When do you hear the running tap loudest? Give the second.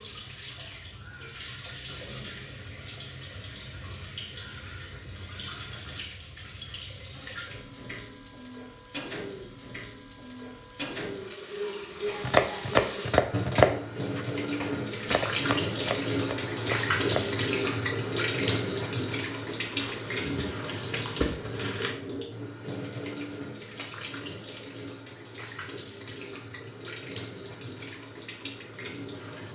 17 s.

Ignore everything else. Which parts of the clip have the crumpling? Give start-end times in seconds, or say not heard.
19.8-21.9.